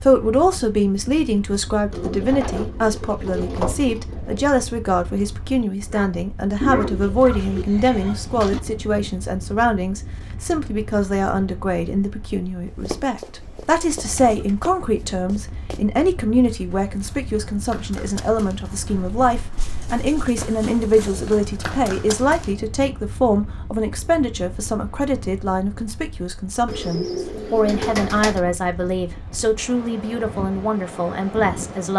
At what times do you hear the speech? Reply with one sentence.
The speech can be heard from 0.0 to 31.9 s.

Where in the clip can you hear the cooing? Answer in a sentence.
The cooing can be heard from 1.9 to 4.5 s, from 6.6 to 8.6 s, from 13.3 to 14.7 s, from 19.6 to 21.5 s and from 26.6 to 28.4 s.